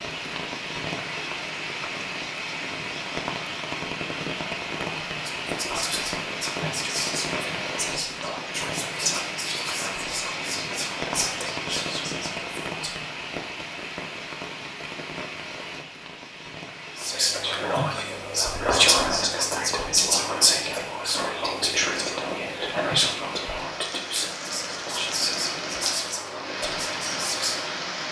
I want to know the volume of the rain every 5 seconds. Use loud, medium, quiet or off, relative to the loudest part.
loud, loud, loud, medium, medium, loud.